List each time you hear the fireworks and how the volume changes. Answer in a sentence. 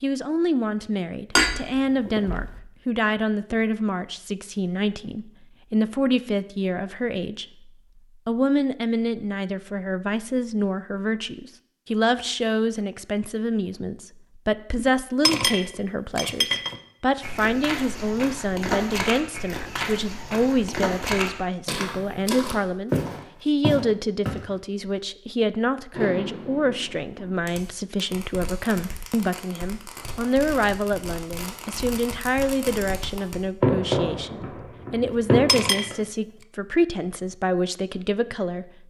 The fireworks can be heard from 25.9 to 36.0 s, getting louder.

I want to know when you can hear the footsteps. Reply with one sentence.
You can hear the footsteps from 17.2 to 24.4 s.